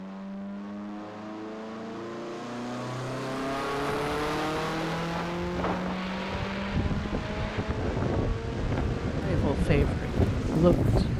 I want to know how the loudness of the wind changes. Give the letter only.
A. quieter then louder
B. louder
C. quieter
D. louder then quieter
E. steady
B.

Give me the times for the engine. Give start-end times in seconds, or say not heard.
0.0-11.1.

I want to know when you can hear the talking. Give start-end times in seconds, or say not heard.
9.2-11.1.